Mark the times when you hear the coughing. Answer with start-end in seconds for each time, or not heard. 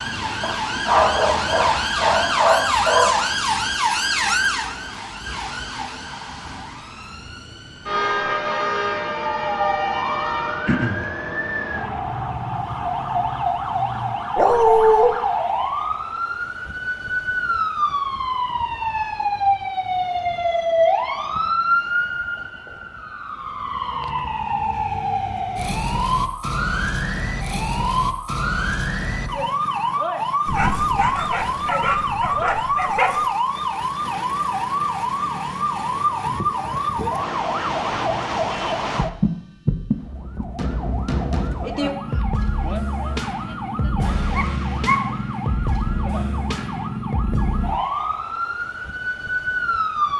10.7-11.1.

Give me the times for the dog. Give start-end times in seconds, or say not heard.
0.4-3.2, 14.3-15.2, 30.4-33.2, 44.3-45.0.